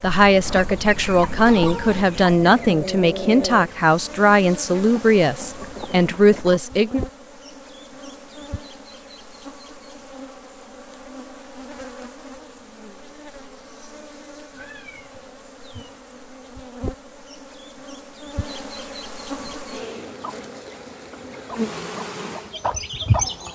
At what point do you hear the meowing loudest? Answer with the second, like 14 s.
15 s.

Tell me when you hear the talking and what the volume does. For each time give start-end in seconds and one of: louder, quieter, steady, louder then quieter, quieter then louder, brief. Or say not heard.
0.0-7.0 steady.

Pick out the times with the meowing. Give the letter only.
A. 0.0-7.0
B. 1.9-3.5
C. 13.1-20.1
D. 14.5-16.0
D.